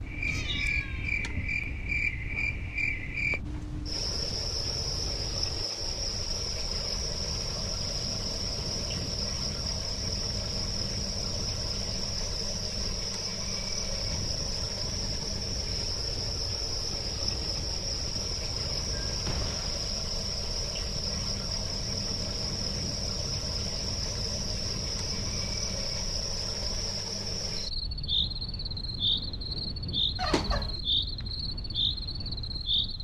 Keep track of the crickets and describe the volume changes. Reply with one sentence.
The loudness of the crickets stays about the same.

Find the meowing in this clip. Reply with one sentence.
The meowing can be heard from 0.2 to 1.1 s, from 19.1 to 19.9 s and from 30.1 to 30.8 s.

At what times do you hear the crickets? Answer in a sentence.
You can hear the crickets from 0.0 to 32.9 s.